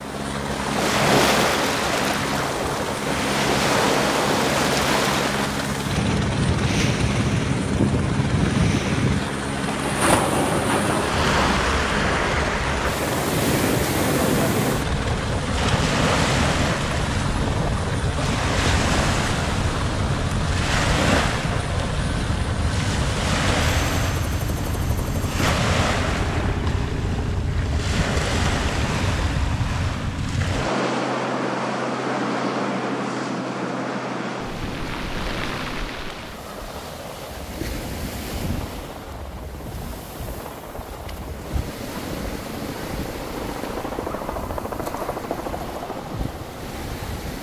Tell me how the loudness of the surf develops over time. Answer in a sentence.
The loudness of the surf goes down.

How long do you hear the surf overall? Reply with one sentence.
You can hear the surf for 47 seconds altogether.